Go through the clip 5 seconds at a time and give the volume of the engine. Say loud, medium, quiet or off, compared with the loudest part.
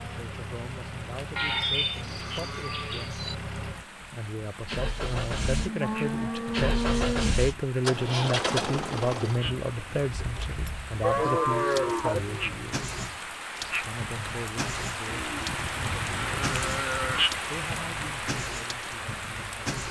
medium, loud, medium, medium.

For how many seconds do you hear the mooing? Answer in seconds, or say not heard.
8 s.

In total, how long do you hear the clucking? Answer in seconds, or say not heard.
not heard.